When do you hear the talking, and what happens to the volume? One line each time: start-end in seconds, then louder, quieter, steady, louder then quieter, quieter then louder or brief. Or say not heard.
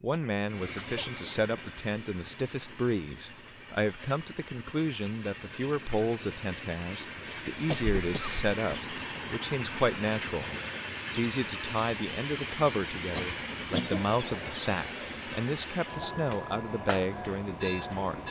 0.0-18.2 steady.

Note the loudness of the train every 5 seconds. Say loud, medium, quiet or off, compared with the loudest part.
medium, loud, loud, loud.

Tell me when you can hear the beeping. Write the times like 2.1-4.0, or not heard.
not heard.